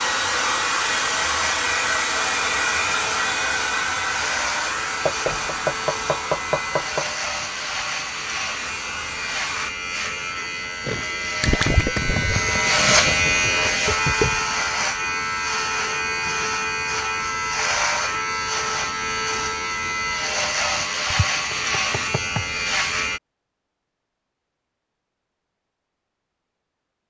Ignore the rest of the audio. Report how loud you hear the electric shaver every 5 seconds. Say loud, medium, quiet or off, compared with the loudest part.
medium, medium, loud, loud, loud, off.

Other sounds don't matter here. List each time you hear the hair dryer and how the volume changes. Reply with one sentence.
The hair dryer can be heard from 0.0 to 9.7 s, getting quieter.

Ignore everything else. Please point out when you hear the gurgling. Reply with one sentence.
The gurgling can be heard from 10.8 to 14.4 s.